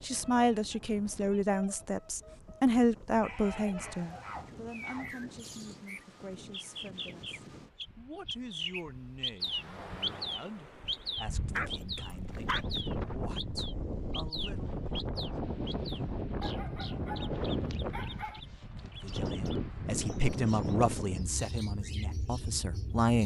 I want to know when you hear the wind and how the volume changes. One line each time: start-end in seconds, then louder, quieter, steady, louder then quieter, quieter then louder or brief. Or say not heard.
0.0-23.1 louder.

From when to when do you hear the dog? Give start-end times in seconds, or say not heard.
3.1-5.1, 11.6-12.8, 16.4-18.4.